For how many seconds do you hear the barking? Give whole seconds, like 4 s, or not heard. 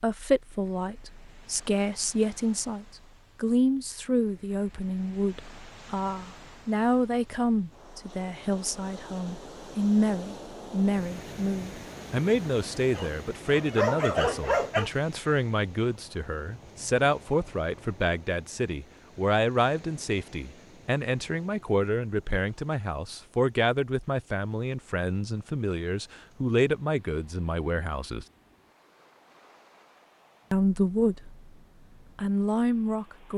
2 s.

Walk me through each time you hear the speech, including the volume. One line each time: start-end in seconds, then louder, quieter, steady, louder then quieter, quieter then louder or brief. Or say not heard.
0.0-28.2 steady
30.5-31.4 brief
32.1-33.3 brief.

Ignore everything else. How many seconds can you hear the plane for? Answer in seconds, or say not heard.
not heard.